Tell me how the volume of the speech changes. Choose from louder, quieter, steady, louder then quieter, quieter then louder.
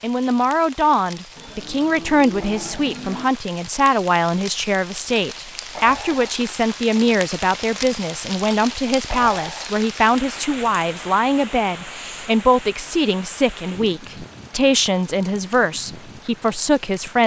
steady.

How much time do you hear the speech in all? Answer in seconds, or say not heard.
17 s.